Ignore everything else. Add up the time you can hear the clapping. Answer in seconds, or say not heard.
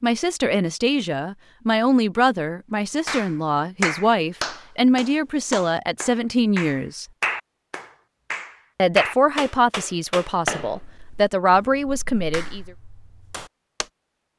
11 s.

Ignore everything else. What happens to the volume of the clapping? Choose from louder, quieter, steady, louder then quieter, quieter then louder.
quieter.